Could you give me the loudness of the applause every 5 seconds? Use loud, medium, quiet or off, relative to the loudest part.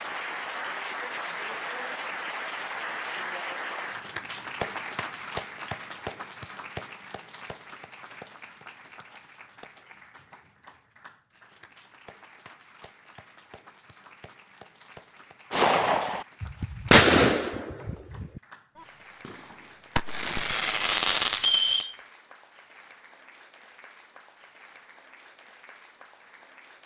loud, medium, quiet, quiet, quiet, quiet.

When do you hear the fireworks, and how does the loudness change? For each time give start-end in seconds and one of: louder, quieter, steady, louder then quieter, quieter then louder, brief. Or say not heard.
15.5-21.9 quieter then louder.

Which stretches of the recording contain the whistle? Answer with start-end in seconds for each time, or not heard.
21.4-21.9.